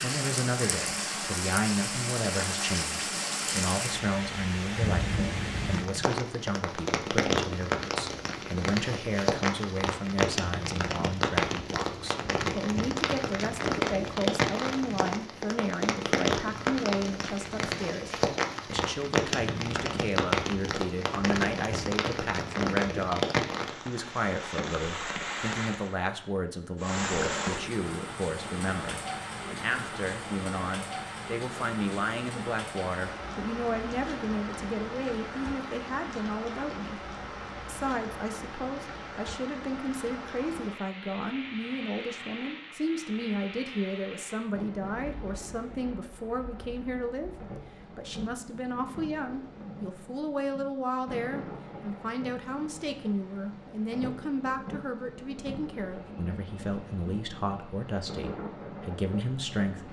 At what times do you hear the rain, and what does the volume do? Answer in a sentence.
You can hear the rain from 0.0 to 59.8 s, getting quieter.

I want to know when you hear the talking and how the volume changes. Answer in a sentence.
The talking can be heard from 0.0 to 37.0 s, at a steady volume; and from 37.6 to 59.8 s, at a steady volume.